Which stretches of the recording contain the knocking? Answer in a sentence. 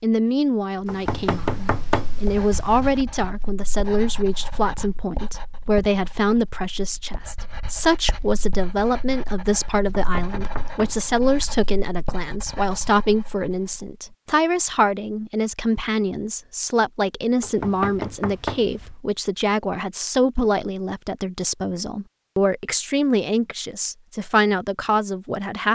You can hear the knocking from 0.8 to 3.0 s, from 9.8 to 11.1 s and from 17.4 to 18.9 s.